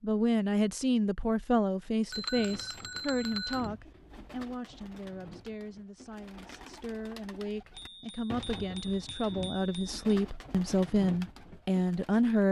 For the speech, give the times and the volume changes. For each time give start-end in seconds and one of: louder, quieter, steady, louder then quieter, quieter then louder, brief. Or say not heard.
0.0-12.4 quieter then louder.